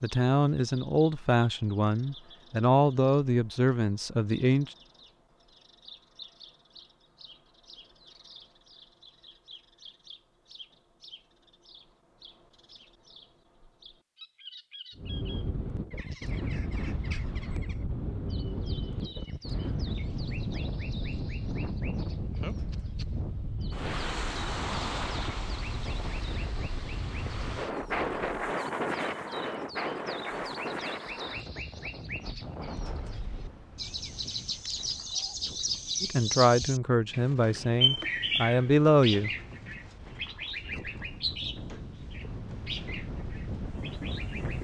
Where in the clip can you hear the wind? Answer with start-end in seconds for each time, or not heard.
14.9-44.5.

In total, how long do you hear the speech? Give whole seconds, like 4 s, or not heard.
8 s.